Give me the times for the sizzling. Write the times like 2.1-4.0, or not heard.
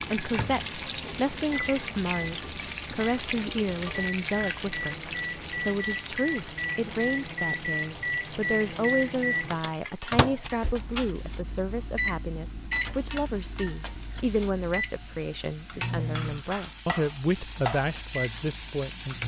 0.0-19.2.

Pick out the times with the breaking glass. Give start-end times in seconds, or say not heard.
not heard.